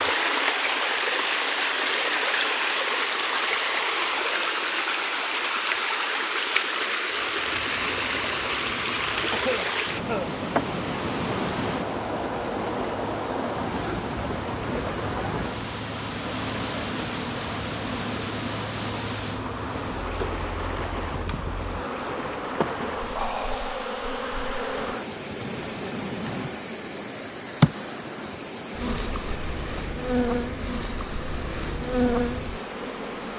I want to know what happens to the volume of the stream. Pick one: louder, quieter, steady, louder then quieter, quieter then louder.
quieter.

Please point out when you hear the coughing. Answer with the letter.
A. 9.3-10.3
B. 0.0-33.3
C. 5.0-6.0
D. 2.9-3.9
A.